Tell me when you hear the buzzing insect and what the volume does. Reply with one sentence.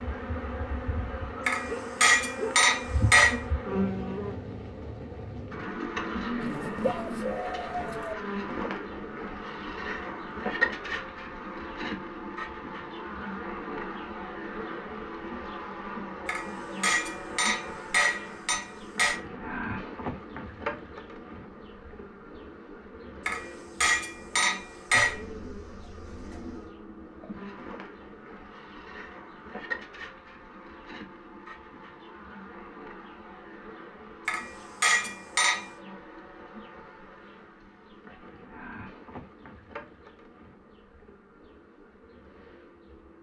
The buzzing insect can be heard from 0.0 to 43.1 s, getting quieter.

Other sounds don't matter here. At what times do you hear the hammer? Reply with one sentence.
You can hear the hammer from 1.4 to 3.5 s, from 16.2 to 19.2 s, from 23.2 to 25.2 s and from 34.2 to 35.7 s.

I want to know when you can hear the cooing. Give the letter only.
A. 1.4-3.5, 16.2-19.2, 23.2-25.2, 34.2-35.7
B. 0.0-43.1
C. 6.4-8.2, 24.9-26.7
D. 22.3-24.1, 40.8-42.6
C.